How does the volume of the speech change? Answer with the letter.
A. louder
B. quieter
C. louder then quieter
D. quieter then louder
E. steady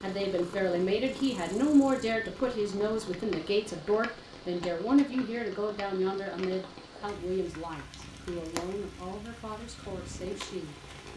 B.